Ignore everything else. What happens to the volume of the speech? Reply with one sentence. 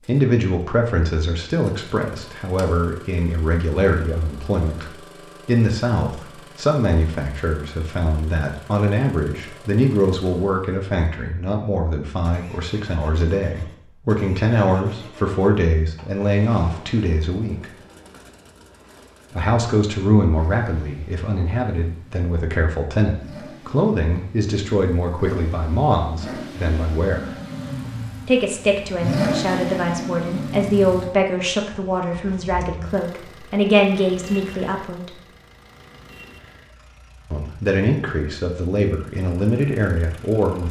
The loudness of the speech stays about the same.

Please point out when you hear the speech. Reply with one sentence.
The speech can be heard from 0.1 to 17.7 s, from 19.4 to 27.3 s, from 28.2 to 35.2 s and from 37.3 to 40.6 s.